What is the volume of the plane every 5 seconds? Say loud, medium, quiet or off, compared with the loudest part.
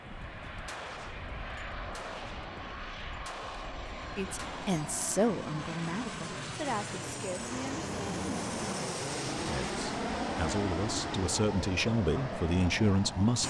medium, loud, loud.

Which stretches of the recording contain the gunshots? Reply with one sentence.
You can hear the gunshots from 0.1 to 5.0 s.